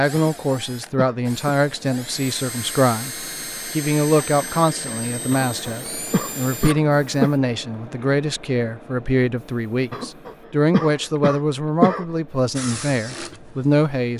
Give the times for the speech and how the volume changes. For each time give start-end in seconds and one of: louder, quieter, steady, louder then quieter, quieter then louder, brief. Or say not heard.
0.0-14.1 steady.